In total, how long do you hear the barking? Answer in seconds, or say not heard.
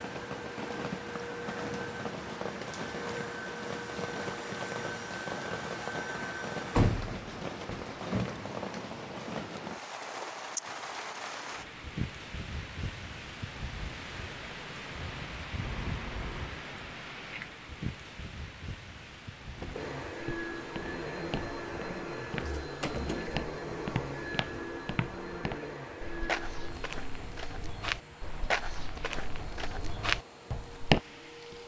not heard.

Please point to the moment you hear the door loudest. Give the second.
7 s.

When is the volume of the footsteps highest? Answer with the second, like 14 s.
31 s.